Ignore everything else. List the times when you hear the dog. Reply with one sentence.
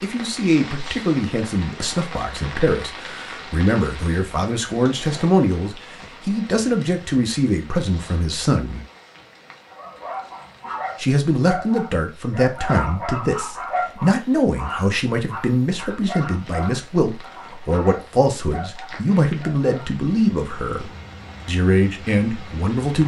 The dog can be heard from 9.7 to 19.9 s.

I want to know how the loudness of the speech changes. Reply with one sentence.
The loudness of the speech stays about the same.